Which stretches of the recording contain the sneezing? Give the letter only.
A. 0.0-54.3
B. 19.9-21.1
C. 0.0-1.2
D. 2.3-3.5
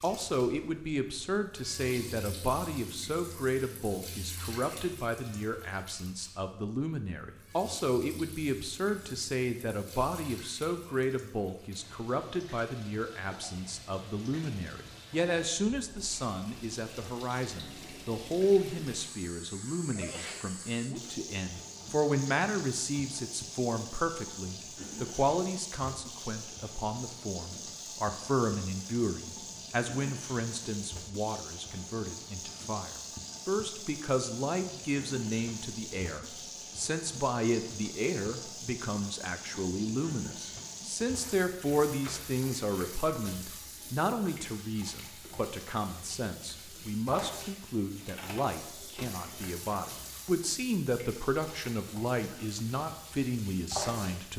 B.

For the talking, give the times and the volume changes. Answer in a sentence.
The talking can be heard from 0.0 to 54.3 s, at a steady volume.